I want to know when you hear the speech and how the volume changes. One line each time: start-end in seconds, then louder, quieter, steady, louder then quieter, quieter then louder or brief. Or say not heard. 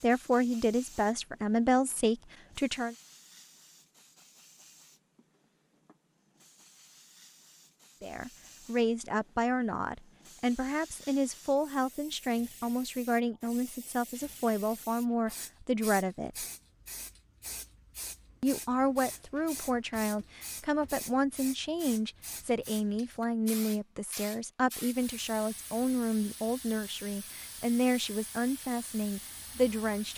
0.0-3.0 brief
8.0-16.4 steady
18.4-30.1 steady.